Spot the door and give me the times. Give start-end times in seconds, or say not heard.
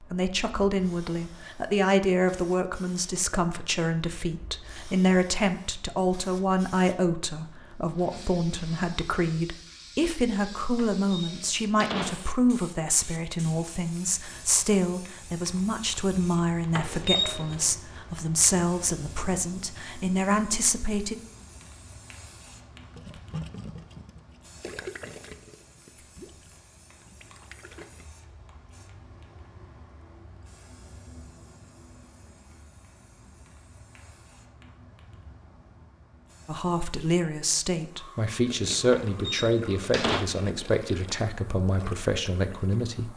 10.8-12.3, 16.7-17.8, 38.9-40.2.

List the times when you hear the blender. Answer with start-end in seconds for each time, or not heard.
not heard.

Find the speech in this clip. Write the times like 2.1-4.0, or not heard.
0.0-21.1, 36.5-43.1.